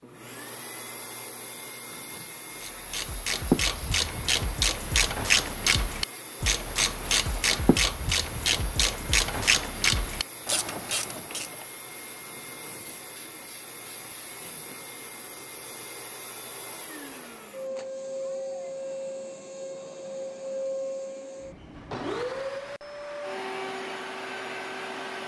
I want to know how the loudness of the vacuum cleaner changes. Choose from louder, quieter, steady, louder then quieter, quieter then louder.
louder.